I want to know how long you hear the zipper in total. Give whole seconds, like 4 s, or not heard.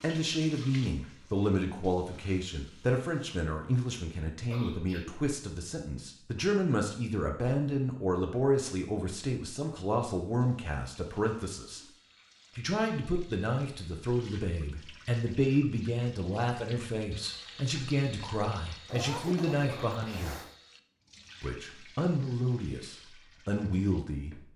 2 s.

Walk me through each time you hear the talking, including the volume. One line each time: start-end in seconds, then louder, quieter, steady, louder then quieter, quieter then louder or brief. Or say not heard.
0.0-11.8 steady
12.6-20.4 steady
21.4-24.4 brief.